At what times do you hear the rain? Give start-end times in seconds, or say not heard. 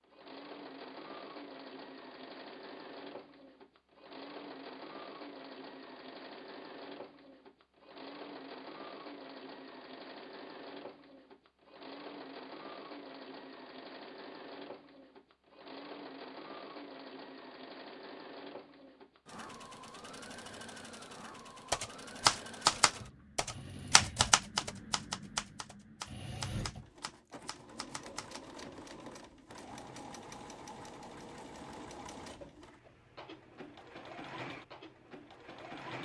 not heard.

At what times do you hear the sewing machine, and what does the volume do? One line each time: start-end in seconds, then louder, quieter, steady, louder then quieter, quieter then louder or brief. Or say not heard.
0.0-35.9 steady.